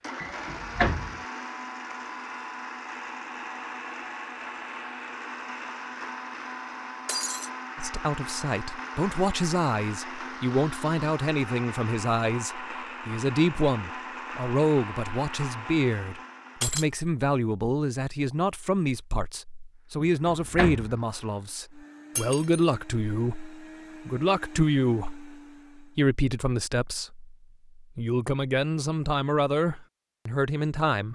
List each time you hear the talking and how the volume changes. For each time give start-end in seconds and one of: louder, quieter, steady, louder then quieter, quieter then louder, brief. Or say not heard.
7.8-31.1 steady.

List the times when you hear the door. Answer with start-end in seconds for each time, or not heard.
0.2-1.1, 20.2-20.9.